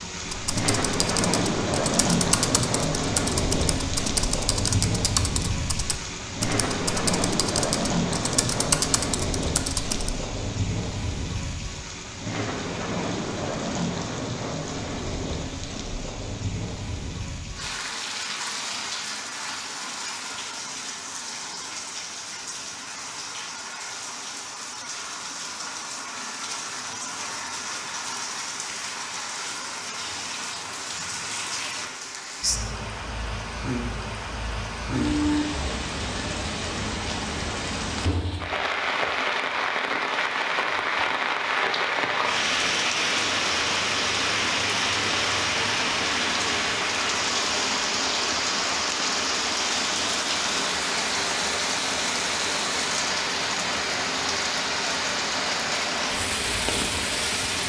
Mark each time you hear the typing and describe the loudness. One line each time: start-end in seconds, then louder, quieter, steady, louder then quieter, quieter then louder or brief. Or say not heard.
0.2-10.1 steady.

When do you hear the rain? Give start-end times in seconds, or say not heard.
0.0-57.6.